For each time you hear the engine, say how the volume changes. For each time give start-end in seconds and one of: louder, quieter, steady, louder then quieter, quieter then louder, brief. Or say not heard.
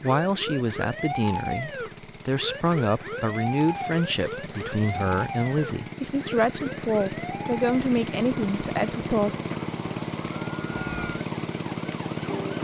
0.0-12.5 louder.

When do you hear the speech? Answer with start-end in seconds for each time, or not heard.
0.0-9.3.